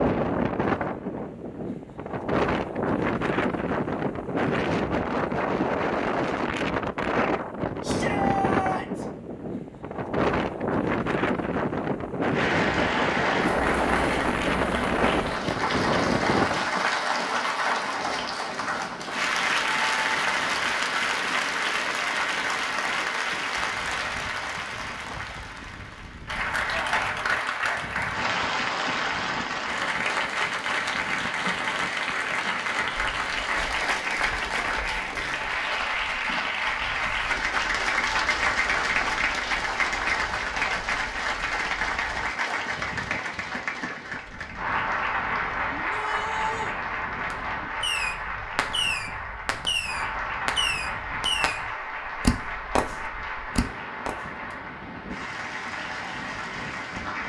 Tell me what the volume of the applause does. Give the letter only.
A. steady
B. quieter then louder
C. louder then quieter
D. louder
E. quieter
E.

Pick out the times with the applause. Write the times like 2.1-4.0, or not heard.
12.3-57.2.